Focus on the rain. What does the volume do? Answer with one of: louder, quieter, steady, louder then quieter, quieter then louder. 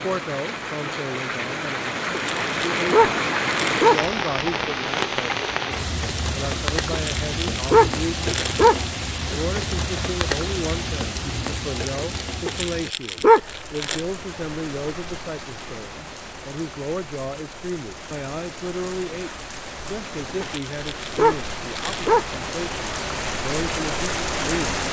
quieter then louder.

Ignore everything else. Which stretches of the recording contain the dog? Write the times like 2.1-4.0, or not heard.
2.1-4.1, 6.9-8.9, 12.4-14.0, 20.4-22.4.